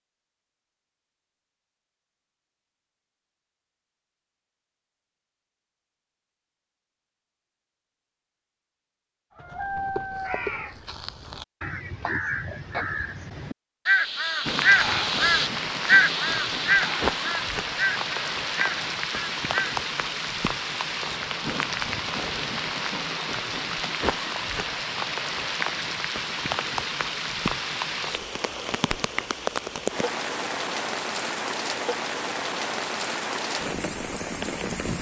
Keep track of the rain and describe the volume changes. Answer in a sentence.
The volume of the rain stays about the same.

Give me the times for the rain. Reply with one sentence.
The rain can be heard from 14.4 to 34.9 s.